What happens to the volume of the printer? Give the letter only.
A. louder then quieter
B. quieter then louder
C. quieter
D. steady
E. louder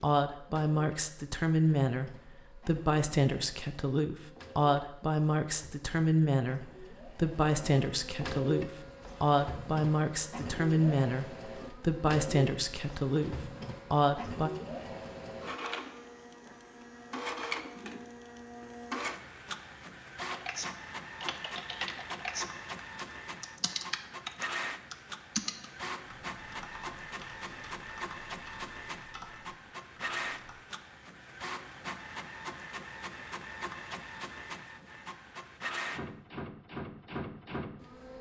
E.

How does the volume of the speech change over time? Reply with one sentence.
The loudness of the speech stays about the same.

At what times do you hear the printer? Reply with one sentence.
You can hear the printer from 0.2 to 38.1 s.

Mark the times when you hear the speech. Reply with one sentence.
You can hear the speech from 0.0 to 14.5 s.